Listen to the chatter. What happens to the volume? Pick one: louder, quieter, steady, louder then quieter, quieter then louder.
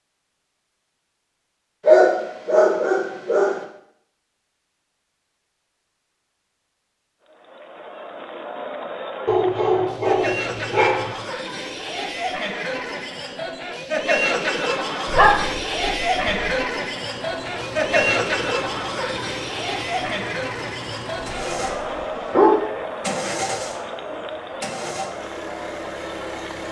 louder then quieter.